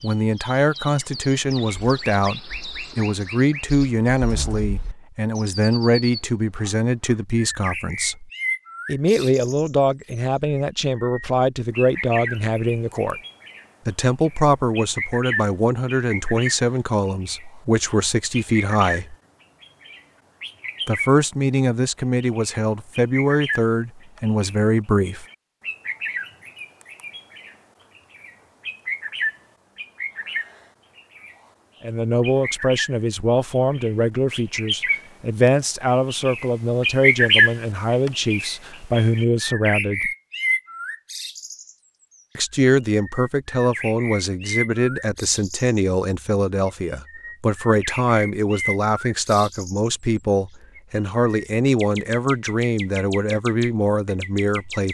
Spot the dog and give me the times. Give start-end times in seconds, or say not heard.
not heard.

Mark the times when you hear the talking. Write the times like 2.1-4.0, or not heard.
0.0-13.2, 13.8-19.1, 20.9-25.2, 31.8-40.1, 42.4-54.8.